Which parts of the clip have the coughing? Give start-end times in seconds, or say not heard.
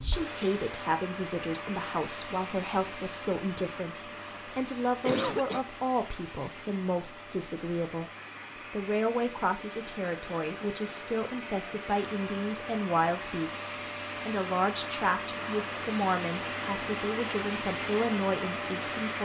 5.0-5.7.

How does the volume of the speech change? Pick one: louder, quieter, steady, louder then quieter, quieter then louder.
steady.